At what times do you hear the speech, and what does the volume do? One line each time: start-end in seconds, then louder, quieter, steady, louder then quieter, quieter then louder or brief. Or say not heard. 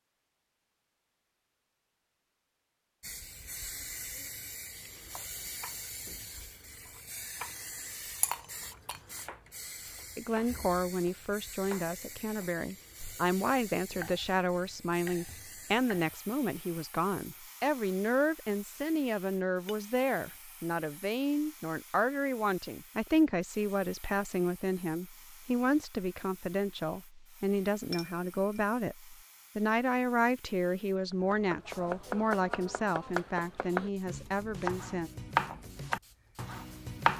10.2-35.1 steady.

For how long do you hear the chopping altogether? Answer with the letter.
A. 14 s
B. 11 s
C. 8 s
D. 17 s
D.